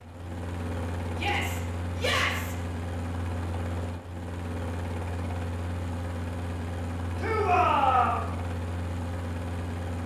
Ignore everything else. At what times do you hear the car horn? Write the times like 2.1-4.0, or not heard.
not heard.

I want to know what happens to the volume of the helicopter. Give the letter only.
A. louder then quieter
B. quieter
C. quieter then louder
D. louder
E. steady
E.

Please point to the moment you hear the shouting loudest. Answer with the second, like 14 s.
8 s.